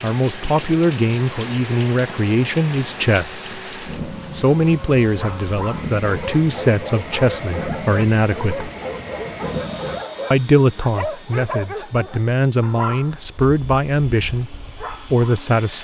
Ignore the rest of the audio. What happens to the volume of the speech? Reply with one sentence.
The volume of the speech stays about the same.